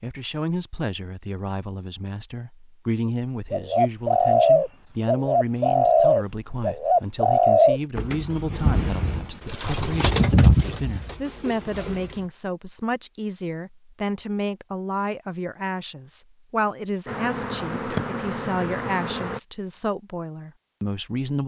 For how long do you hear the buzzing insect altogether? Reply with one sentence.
You can hear the buzzing insect for 2 seconds altogether.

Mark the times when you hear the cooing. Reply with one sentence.
You can hear the cooing from 3.5 to 12.2 s.